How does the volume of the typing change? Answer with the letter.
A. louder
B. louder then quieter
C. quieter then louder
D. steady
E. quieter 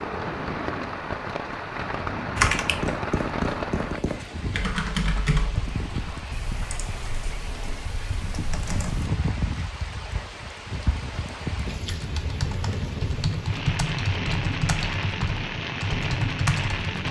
C.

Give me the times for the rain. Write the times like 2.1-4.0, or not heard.
0.0-17.0.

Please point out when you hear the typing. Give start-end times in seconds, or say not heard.
2.4-9.1, 11.9-17.0.